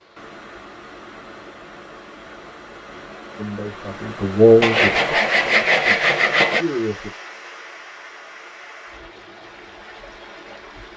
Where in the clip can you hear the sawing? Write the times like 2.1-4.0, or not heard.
4.6-6.7.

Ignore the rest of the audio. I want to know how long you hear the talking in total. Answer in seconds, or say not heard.
4 s.